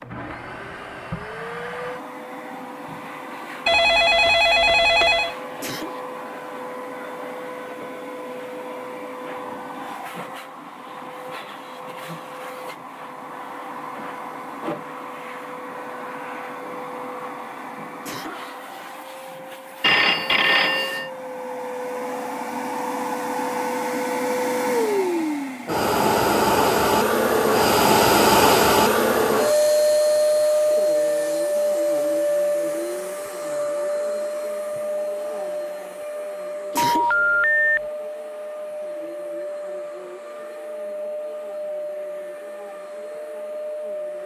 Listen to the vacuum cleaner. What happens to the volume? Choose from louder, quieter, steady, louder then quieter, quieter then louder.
louder then quieter.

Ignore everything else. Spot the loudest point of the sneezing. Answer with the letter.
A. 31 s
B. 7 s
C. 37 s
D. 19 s
C.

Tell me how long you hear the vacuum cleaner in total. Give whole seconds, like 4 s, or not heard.
44 s.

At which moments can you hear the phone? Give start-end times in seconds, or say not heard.
3.6-5.3, 19.8-21.1, 36.8-37.8.